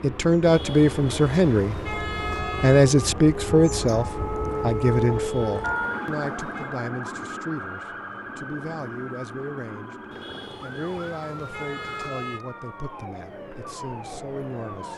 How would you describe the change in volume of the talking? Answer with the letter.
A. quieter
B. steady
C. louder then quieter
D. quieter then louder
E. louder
A.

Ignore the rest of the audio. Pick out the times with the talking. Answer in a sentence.
You can hear the talking from 0.0 to 9.9 s and from 10.6 to 14.9 s.